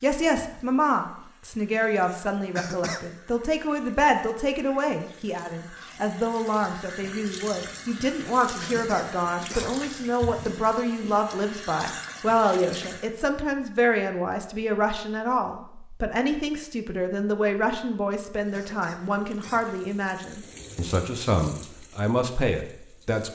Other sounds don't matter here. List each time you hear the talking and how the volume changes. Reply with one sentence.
You can hear the talking from 0.0 to 23.3 s, at a steady volume.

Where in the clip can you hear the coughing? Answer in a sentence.
You can hear the coughing from 2.5 to 3.0 s, from 8.6 to 10.2 s and from 18.5 to 19.6 s.